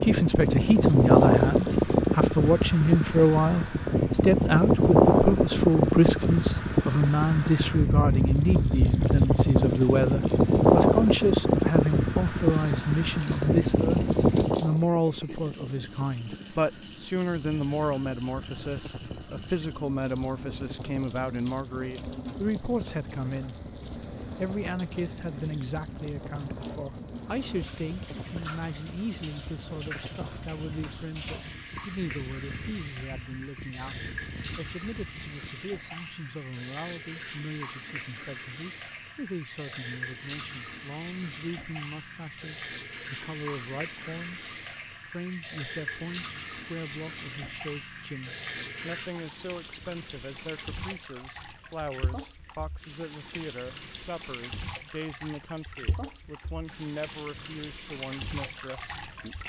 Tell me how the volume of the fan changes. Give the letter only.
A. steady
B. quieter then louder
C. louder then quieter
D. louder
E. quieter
E.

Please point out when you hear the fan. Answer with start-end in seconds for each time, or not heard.
0.0-35.5.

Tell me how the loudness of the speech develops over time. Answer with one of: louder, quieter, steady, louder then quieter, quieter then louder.
quieter.